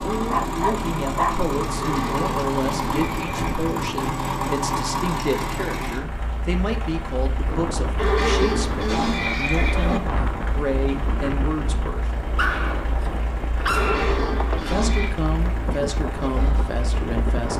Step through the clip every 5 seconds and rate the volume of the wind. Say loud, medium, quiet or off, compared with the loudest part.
off, loud, loud, loud.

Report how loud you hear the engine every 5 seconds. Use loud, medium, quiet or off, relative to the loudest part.
loud, medium, medium, medium.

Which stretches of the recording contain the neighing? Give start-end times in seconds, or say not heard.
1.8-3.8, 8.0-10.0, 13.8-15.2.